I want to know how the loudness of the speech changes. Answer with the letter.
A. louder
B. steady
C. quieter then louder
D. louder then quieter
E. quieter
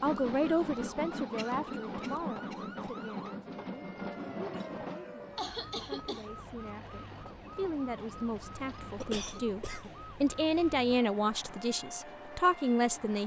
C.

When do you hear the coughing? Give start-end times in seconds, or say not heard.
1.4-2.8, 4.5-6.2, 9.0-10.0.